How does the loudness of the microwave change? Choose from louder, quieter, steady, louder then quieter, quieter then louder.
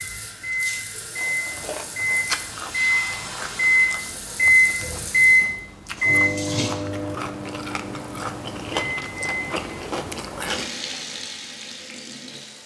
louder then quieter.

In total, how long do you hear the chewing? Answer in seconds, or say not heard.
9 s.